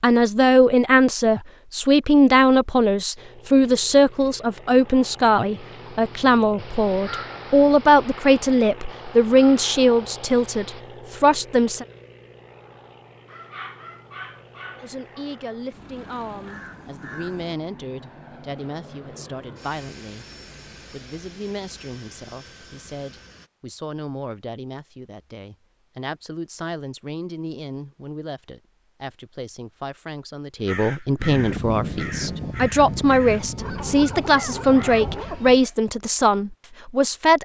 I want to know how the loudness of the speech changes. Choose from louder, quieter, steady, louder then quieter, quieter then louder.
quieter then louder.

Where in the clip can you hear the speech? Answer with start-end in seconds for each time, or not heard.
0.0-11.8, 14.8-20.2, 20.9-37.4.